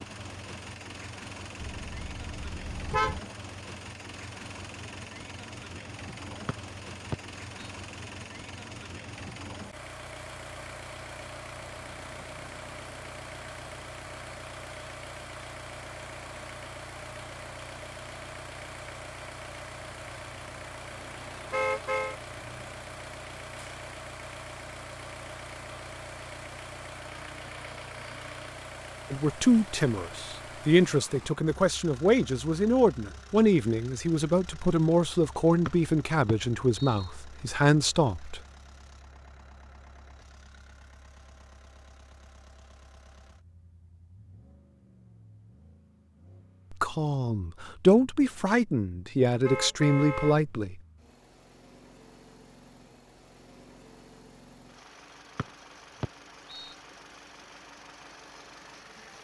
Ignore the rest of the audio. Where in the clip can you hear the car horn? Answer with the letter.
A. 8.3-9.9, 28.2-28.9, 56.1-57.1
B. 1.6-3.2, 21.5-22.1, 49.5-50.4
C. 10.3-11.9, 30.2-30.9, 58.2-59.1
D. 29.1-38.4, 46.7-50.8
B.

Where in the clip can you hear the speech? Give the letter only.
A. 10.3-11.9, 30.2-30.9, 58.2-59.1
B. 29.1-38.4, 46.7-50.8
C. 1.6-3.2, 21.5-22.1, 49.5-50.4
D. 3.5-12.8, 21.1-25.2
B.